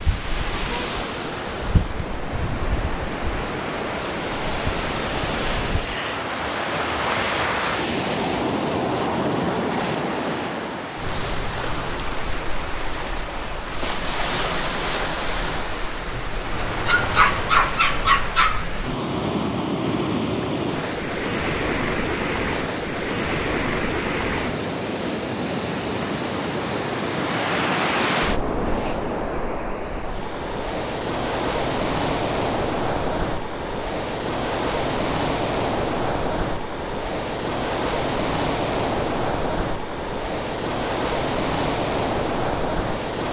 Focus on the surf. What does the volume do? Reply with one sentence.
The loudness of the surf stays about the same.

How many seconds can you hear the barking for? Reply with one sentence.
The barking can be heard for 2 seconds in total.